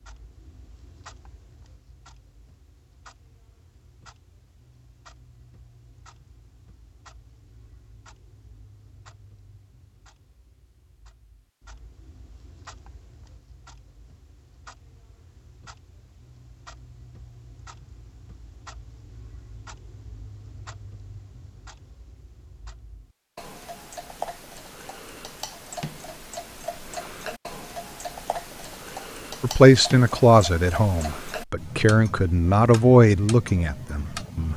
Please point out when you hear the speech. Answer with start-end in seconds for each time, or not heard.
29.4-34.5.